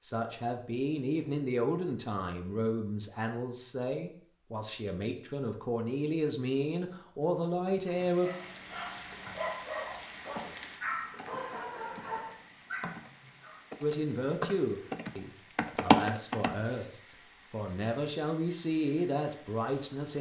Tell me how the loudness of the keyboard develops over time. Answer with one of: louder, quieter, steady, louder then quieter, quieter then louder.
louder.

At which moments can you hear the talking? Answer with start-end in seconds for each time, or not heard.
0.0-8.3, 13.8-20.1.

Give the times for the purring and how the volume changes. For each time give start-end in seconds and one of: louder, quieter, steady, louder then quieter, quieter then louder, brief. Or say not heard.
not heard.